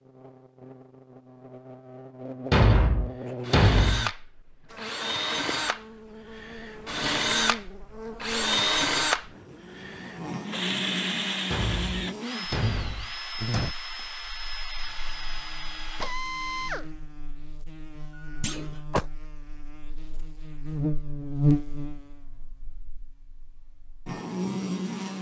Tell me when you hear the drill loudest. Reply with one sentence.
The loudest moment of the drill is at 9 seconds.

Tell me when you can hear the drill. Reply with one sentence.
The drill can be heard from 3.4 to 16.9 s.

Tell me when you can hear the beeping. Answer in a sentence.
You can hear the beeping from 18.1 to 19.1 s.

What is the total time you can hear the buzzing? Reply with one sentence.
The buzzing can be heard for 25 seconds in total.